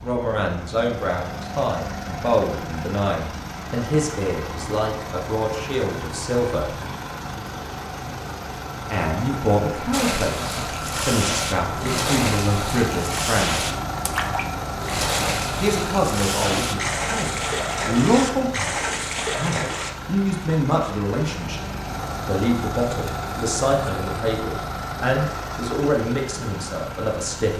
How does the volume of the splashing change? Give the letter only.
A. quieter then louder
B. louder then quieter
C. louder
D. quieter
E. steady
E.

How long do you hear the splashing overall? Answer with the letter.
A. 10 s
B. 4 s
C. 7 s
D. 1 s
A.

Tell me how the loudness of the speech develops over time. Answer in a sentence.
The loudness of the speech stays about the same.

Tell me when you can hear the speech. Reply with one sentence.
You can hear the speech from 0.0 to 6.8 s, from 8.9 to 13.7 s, from 15.6 to 21.6 s and from 22.2 to 27.5 s.